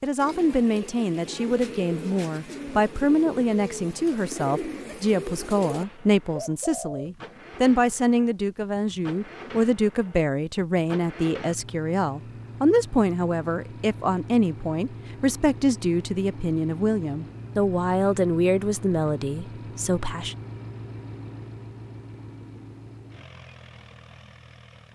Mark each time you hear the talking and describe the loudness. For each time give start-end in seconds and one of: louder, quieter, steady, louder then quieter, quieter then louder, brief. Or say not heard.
0.0-20.4 steady.